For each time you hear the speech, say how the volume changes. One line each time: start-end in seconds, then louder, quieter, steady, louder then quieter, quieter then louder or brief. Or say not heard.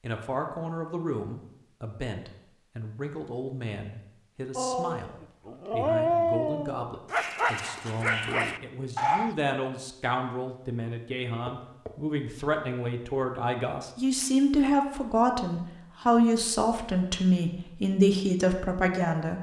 0.0-19.3 louder.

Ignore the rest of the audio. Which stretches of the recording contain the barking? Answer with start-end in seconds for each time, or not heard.
4.5-9.3.